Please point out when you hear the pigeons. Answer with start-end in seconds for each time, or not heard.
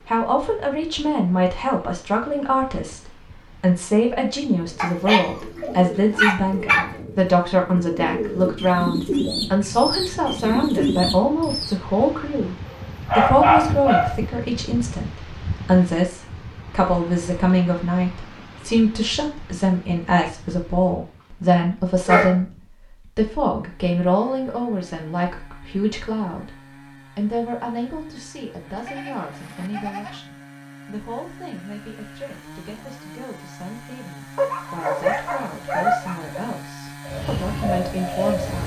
4.6-11.8, 37.0-38.6.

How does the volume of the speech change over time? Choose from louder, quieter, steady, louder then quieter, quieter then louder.
quieter.